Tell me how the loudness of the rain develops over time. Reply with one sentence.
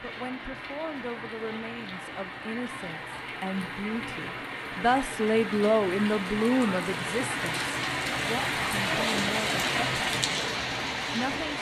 The volume of the rain goes up.